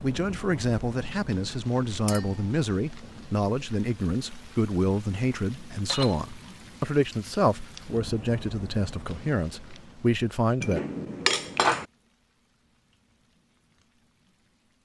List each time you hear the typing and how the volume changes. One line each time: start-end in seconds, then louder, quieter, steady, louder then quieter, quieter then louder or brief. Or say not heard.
not heard.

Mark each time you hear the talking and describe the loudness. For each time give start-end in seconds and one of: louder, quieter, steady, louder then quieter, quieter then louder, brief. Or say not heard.
0.0-10.8 steady.